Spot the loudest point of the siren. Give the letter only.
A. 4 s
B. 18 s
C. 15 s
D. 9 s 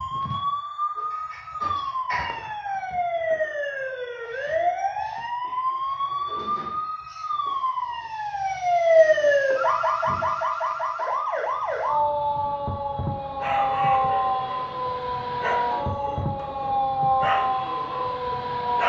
D.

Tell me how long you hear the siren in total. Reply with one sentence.
The siren can be heard for 19 seconds in total.